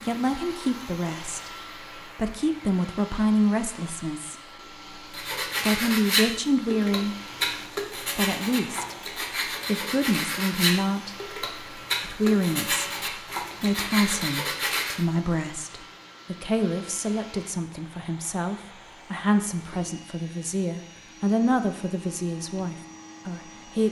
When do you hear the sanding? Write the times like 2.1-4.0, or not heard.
5.1-15.1.